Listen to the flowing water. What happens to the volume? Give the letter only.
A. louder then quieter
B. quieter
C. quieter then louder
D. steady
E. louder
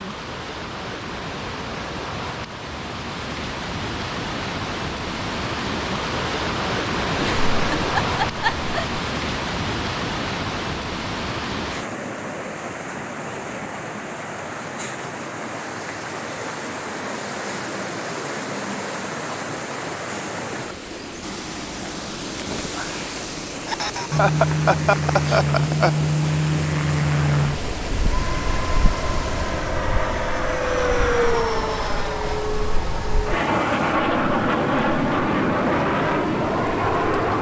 B.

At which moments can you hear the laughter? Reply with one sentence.
You can hear the laughter from 7.2 to 9.0 s and from 23.6 to 25.9 s.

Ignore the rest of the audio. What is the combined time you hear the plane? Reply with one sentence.
The plane can be heard for 13 seconds in total.